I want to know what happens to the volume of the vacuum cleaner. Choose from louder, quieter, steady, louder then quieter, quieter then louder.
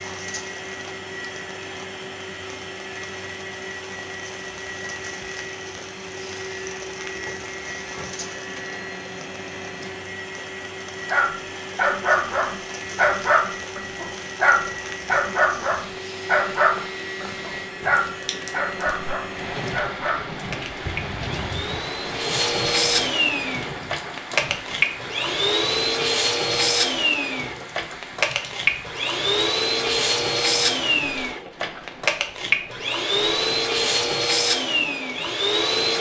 louder.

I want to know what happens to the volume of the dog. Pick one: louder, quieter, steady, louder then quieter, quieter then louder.
quieter.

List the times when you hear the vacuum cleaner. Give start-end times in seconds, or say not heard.
0.0-35.9.